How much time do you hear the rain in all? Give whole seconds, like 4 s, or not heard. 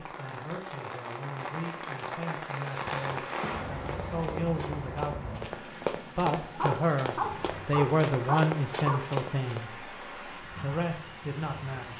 12 s.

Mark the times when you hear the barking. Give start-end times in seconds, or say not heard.
6.5-9.0.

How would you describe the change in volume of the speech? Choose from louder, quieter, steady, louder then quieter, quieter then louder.
louder then quieter.